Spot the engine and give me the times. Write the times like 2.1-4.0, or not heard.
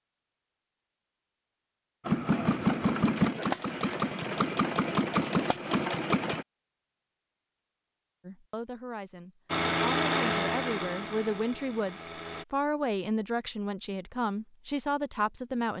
2.0-6.5, 9.5-12.4.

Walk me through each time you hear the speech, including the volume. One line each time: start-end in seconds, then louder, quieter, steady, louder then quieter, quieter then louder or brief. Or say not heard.
8.2-15.7 louder.